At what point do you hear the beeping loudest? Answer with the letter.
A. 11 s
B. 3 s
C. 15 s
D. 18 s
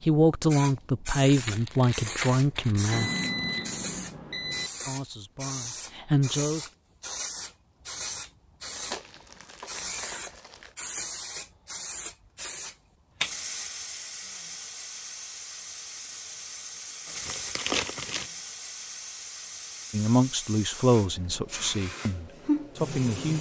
B.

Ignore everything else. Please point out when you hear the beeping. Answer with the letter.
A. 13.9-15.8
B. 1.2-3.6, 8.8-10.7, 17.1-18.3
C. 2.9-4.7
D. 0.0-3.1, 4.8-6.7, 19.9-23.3
C.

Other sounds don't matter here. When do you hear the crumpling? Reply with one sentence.
You can hear the crumpling from 1.2 to 3.6 s, from 8.8 to 10.7 s and from 17.1 to 18.3 s.